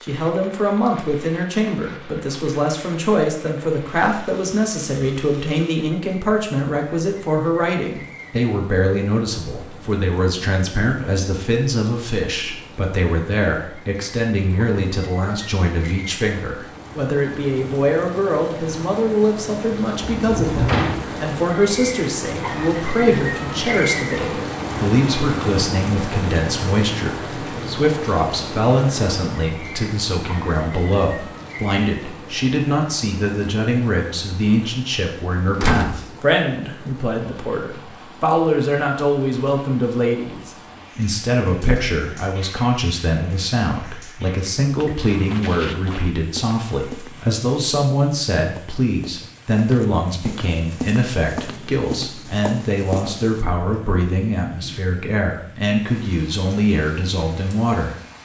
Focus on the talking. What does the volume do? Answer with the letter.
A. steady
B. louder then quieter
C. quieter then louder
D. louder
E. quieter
A.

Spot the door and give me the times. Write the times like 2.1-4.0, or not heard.
20.1-21.1, 35.5-36.6.